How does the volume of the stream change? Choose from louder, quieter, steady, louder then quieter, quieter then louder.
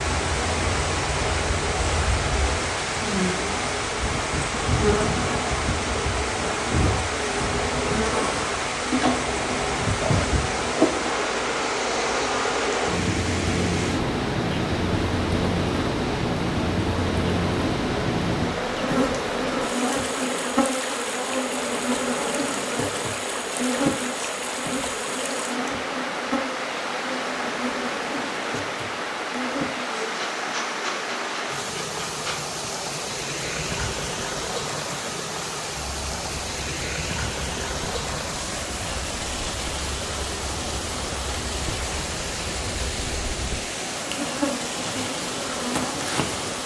steady.